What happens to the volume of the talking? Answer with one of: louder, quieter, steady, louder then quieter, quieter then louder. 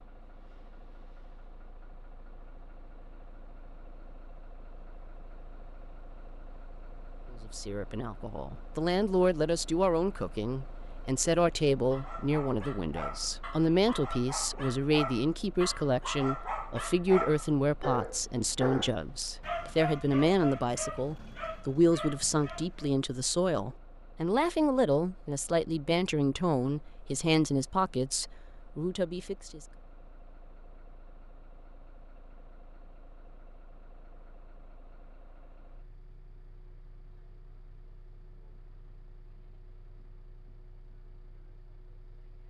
steady.